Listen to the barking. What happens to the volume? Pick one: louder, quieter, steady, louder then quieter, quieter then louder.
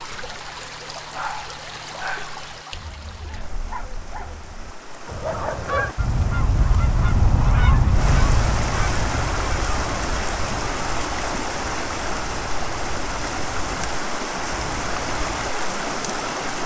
quieter then louder.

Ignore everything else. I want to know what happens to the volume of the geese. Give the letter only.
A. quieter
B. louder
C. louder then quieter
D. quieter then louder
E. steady
A.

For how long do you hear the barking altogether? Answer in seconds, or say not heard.
6 s.